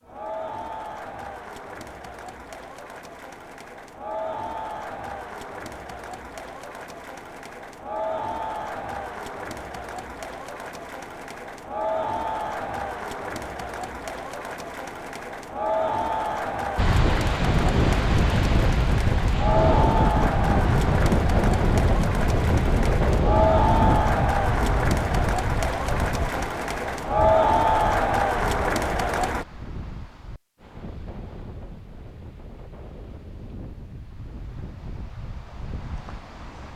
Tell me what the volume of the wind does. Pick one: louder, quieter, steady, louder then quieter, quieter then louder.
quieter.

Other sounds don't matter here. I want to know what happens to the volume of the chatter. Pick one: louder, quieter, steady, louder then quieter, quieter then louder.
louder.